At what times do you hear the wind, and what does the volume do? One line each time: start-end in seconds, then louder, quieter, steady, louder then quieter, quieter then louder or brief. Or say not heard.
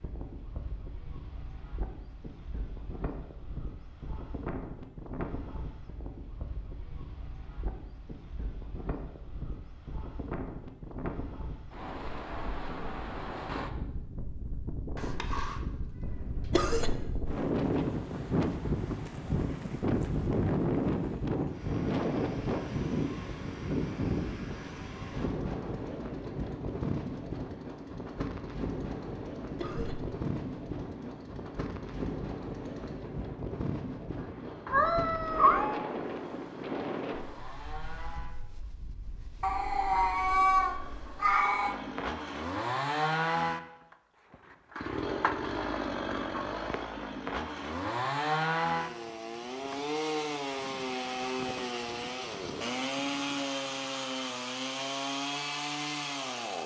0.0-41.5 louder then quieter.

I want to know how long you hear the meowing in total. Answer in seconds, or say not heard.
4 s.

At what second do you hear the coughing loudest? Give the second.
17 s.